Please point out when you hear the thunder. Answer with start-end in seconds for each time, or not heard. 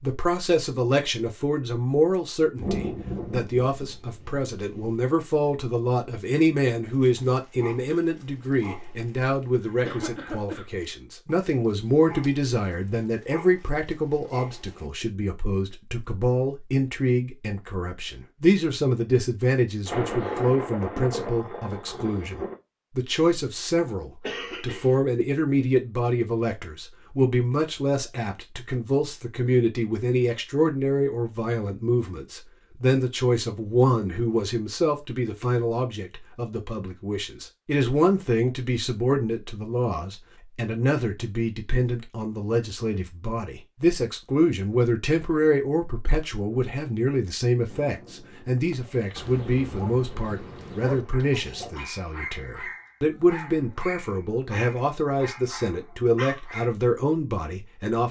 2.5-5.0, 19.9-22.6, 47.6-51.9.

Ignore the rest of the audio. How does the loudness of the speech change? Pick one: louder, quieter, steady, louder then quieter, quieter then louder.
steady.